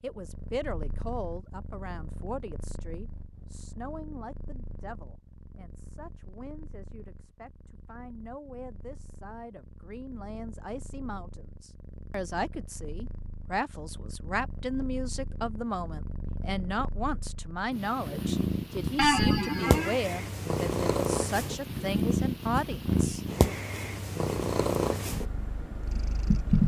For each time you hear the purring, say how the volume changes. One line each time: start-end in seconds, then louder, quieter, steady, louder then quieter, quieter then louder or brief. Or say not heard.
0.0-26.6 quieter then louder.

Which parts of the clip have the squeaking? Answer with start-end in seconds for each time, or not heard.
18.9-20.0.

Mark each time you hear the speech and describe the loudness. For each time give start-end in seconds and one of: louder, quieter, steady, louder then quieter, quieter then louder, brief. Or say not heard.
0.0-23.2 quieter then louder.